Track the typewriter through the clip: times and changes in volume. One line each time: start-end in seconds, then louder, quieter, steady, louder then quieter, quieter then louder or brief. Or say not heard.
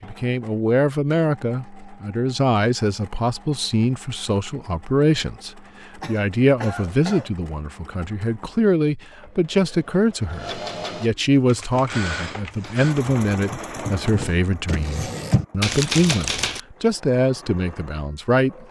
11.4-16.6 louder.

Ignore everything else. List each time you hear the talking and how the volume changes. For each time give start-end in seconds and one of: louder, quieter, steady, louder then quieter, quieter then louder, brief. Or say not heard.
0.0-18.6 steady.